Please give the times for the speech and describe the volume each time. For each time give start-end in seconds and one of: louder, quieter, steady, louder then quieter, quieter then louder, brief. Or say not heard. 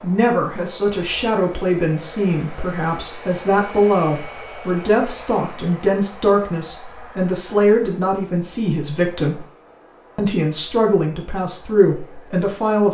0.0-9.4 steady
10.2-12.8 brief.